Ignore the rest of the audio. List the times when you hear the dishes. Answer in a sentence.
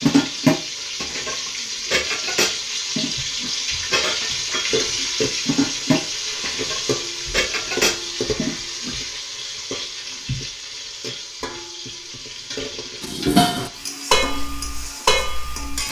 The dishes can be heard from 0.0 to 8.9 s and from 13.0 to 15.8 s.